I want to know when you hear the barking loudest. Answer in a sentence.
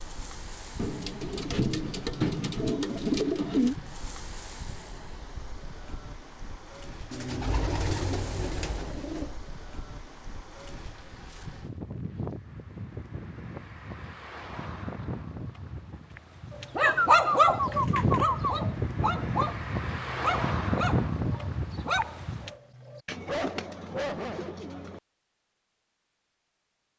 The volume of the barking peaks at 17 seconds.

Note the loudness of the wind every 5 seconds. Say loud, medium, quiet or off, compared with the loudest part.
quiet, quiet, medium, loud, loud, off.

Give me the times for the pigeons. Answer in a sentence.
You can hear the pigeons from 0.8 to 3.8 s, from 7.1 to 9.3 s, from 16.8 to 18.6 s and from 23.1 to 25.0 s.